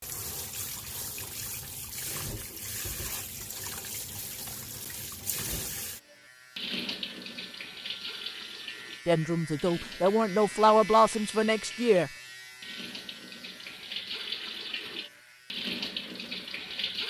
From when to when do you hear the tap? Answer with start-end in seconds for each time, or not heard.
0.0-17.0.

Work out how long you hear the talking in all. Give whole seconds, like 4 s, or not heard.
3 s.